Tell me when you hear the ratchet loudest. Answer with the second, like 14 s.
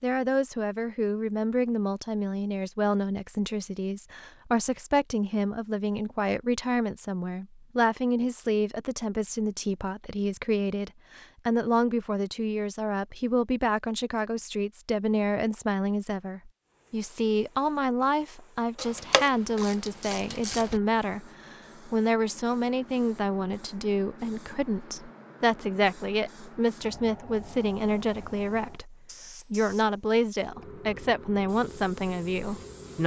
19 s.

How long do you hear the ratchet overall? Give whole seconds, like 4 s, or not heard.
2 s.